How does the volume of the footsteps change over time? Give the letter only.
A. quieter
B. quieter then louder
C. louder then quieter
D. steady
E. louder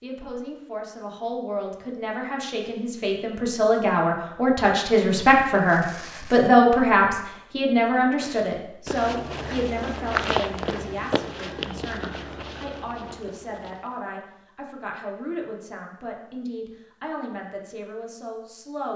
C.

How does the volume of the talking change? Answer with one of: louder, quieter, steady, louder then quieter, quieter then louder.
louder then quieter.